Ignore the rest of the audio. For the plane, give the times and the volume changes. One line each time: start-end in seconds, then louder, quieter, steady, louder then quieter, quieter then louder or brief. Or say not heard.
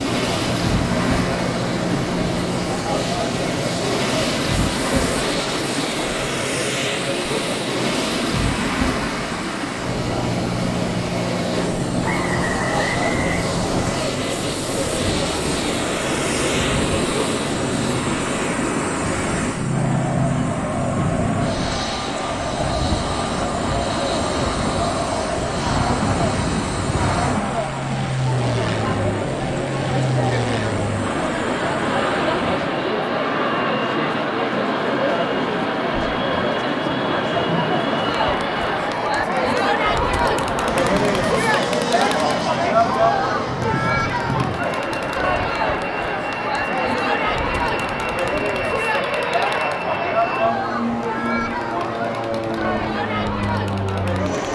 0.0-54.5 steady.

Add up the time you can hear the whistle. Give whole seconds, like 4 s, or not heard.
2 s.